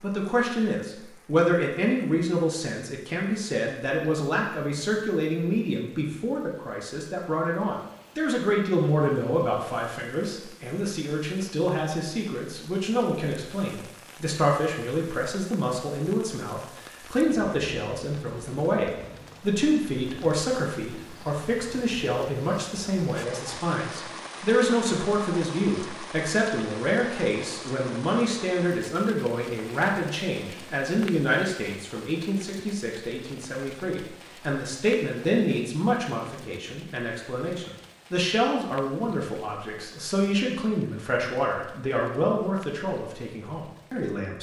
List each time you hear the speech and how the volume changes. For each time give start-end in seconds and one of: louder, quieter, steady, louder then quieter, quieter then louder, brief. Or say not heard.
0.0-44.3 steady.